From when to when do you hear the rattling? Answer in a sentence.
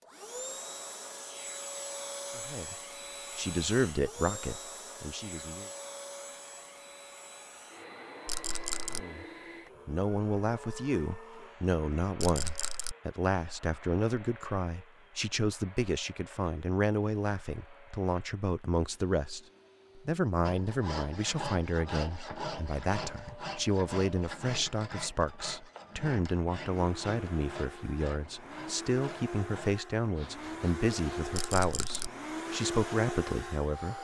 The rattling can be heard from 8.2 to 9.0 s, from 12.2 to 12.9 s and from 31.3 to 32.1 s.